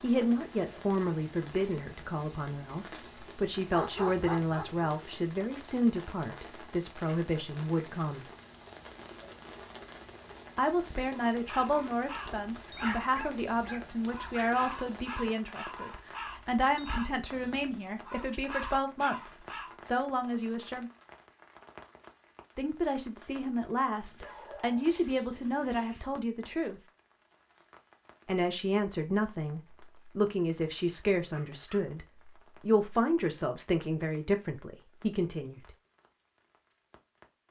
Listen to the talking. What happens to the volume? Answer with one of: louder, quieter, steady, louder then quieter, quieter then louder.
steady.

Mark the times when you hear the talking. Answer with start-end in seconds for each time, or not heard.
0.0-8.2, 10.6-20.9, 22.6-26.8, 28.2-35.6.